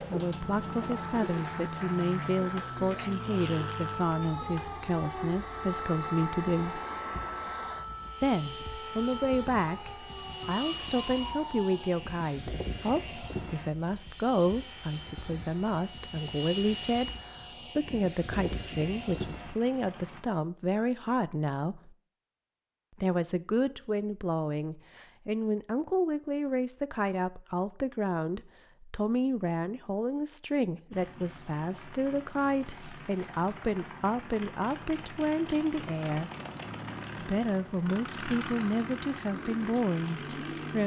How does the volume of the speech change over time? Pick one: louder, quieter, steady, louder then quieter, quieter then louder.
steady.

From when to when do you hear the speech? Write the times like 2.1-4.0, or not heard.
0.0-6.8, 8.2-21.9, 23.0-36.3, 37.1-40.8.